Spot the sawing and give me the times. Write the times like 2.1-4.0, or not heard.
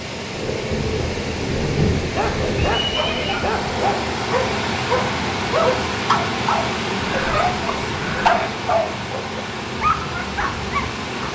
not heard.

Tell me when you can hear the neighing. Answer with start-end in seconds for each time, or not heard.
2.8-3.5, 7.0-8.6.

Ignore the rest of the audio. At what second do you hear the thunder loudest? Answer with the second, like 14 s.
2 s.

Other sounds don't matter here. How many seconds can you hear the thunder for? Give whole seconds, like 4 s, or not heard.
3 s.